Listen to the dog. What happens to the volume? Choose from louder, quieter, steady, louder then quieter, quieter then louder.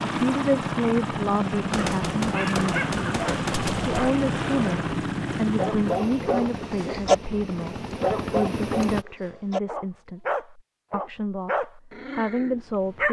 louder then quieter.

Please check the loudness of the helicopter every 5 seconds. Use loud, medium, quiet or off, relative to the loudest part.
loud, loud, off.